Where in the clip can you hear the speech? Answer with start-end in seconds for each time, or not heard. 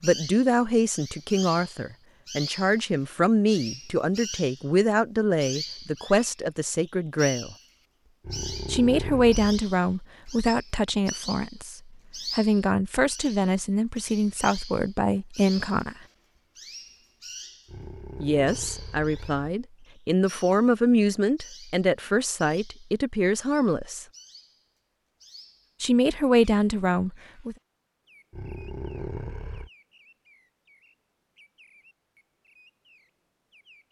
0.0-7.5, 8.7-15.9, 18.2-24.1, 25.8-27.6.